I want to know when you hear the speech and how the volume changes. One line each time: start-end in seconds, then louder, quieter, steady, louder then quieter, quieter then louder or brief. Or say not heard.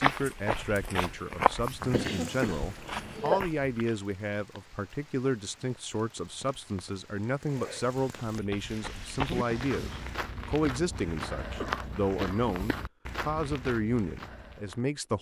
0.0-15.1 steady.